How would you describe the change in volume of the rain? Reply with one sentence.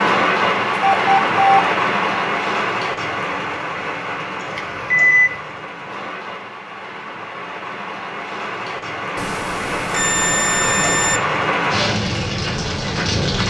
The loudness of the rain goes down, then up.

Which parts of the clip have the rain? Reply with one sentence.
The rain can be heard from 0.0 to 13.4 s.